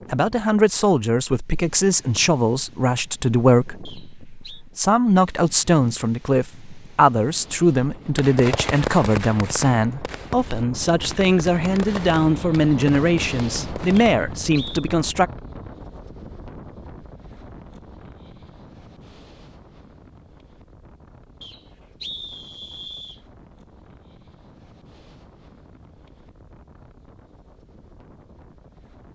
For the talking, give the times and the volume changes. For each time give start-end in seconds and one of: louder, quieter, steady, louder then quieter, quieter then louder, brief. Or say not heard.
0.1-15.3 steady.